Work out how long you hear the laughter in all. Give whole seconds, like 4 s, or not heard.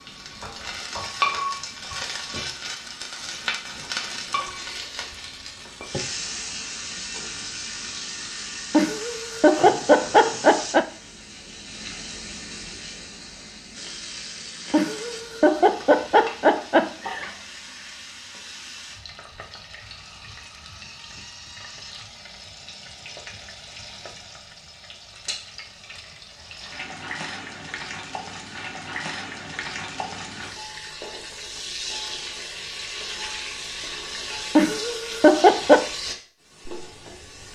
6 s.